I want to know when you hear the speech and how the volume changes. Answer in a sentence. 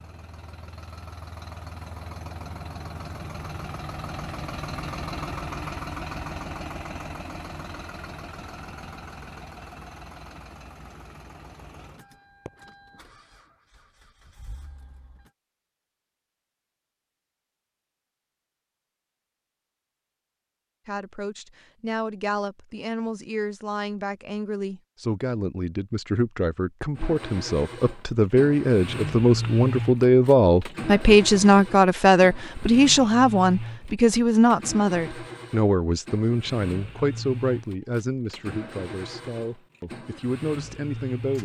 The speech can be heard from 20.9 to 41.3 s, getting louder then quieter.